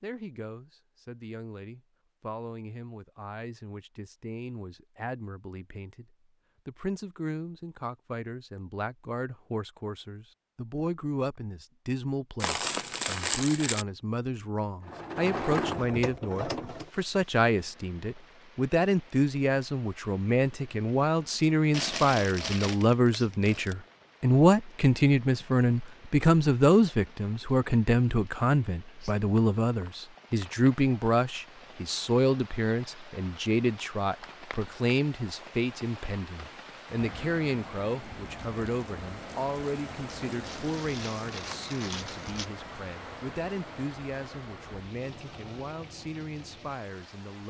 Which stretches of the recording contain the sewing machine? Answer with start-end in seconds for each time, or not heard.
14.8-16.9.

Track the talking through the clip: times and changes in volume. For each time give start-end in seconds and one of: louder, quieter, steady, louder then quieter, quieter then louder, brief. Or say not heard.
0.0-47.4 louder then quieter.